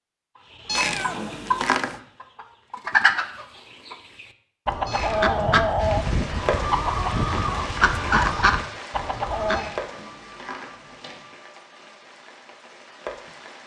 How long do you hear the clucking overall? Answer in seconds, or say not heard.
9 s.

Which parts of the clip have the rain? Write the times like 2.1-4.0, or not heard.
5.8-13.6.